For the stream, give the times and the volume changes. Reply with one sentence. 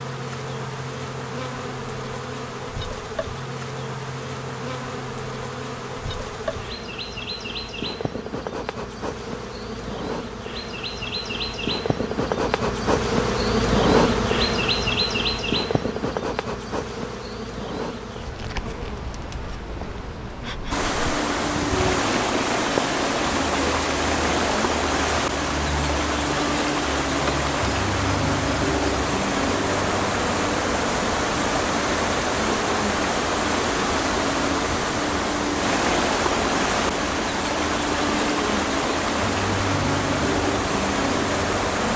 You can hear the stream from 20.7 to 41.9 s, at a steady volume.